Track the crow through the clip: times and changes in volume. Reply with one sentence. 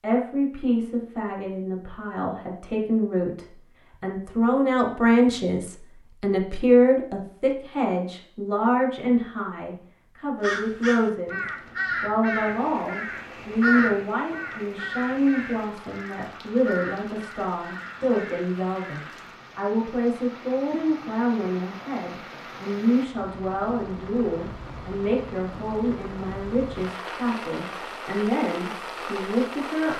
You can hear the crow from 10.4 to 19.1 s, getting quieter.